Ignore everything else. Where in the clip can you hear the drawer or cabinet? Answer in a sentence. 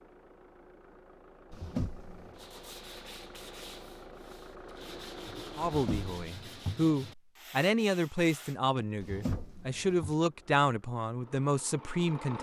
The drawer or cabinet can be heard from 1.5 to 2.4 s, from 5.7 to 6.8 s and from 9.0 to 10.2 s.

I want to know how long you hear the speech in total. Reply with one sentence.
The speech can be heard for 7 seconds in total.